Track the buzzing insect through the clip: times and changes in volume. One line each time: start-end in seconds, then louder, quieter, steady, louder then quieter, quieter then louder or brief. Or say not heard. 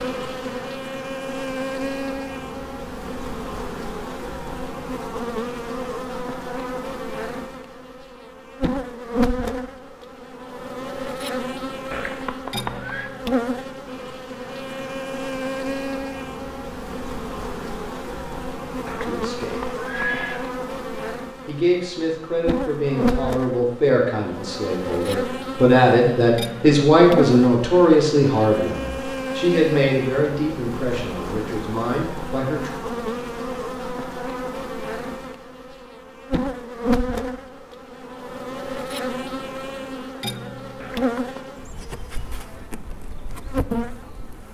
0.0-44.4 steady.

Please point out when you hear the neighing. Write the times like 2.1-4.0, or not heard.
11.9-13.1, 18.9-20.4, 40.8-41.4.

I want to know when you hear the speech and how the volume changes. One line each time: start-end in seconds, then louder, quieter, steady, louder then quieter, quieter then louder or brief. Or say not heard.
19.0-19.8 brief
21.4-32.7 louder then quieter.